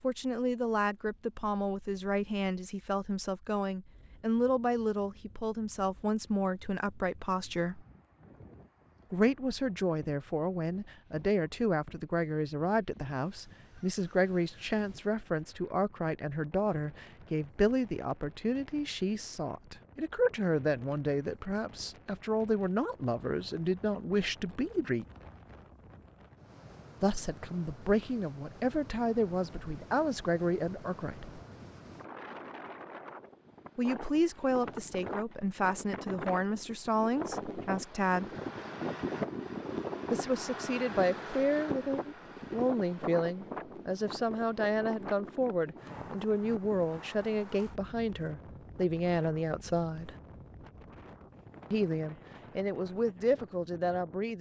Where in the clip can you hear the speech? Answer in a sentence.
You can hear the speech from 0.0 to 7.8 s, from 9.1 to 25.1 s, from 27.0 to 31.4 s, from 33.8 to 38.3 s, from 40.1 to 50.1 s and from 51.7 to 54.3 s.